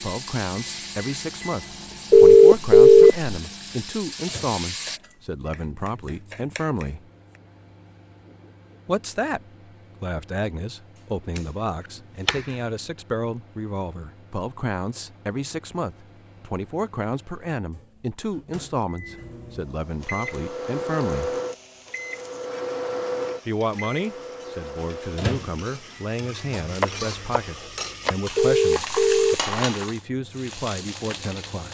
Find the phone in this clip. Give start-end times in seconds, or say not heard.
2.1-3.2, 28.4-29.4.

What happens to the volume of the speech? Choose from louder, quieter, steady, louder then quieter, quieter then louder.
steady.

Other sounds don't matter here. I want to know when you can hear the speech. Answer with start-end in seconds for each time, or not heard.
0.0-7.0, 8.8-21.4, 23.4-31.7.